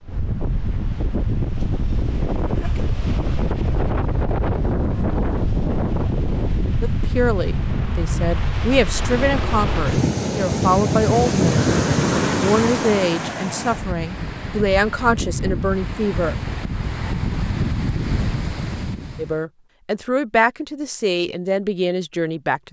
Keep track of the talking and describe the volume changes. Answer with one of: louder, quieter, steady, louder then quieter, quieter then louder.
steady.